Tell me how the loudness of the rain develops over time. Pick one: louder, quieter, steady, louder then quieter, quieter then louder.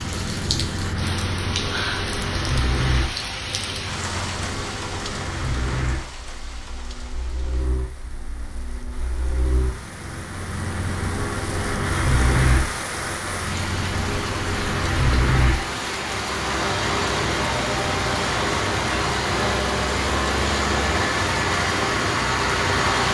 quieter then louder.